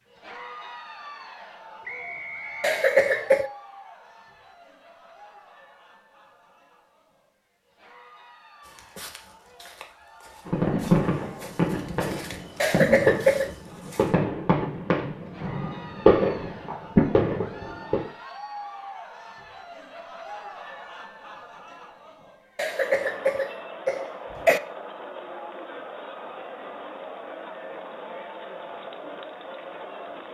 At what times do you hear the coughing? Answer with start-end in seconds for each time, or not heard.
2.6-3.5, 12.6-13.5, 22.6-24.6.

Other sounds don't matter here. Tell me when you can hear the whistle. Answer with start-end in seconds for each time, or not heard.
1.9-3.3.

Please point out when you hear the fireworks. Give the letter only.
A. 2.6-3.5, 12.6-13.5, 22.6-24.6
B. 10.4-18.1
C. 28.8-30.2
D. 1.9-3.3
B.